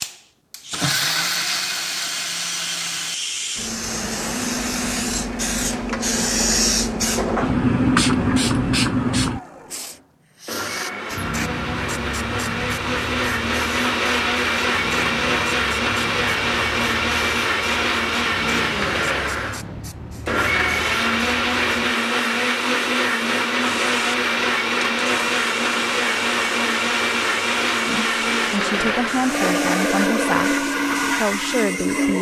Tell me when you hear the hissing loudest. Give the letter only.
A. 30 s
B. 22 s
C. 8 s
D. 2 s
C.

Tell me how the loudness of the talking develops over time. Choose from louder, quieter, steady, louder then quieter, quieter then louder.
steady.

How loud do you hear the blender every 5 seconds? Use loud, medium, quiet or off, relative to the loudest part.
medium, quiet, loud, loud, loud, loud, loud.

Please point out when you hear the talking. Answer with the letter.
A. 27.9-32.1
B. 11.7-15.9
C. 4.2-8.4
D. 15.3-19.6
A.